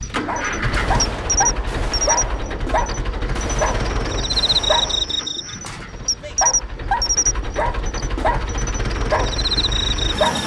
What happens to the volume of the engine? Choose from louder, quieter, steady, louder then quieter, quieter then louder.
quieter then louder.